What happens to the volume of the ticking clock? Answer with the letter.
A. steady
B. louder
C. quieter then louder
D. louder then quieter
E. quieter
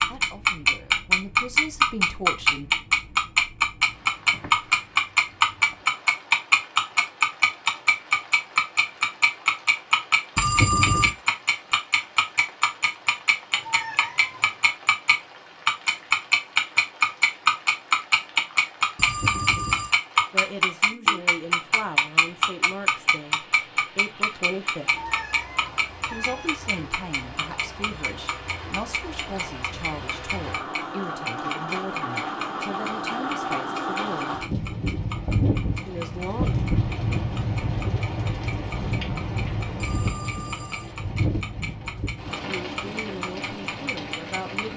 E.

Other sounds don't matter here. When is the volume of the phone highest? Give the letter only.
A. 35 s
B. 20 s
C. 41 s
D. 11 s
D.